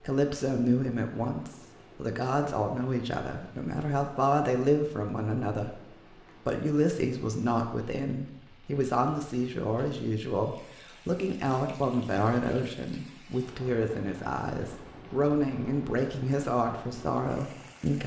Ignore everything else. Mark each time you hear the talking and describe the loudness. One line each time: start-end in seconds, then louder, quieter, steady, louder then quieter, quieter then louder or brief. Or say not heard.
0.0-18.0 steady.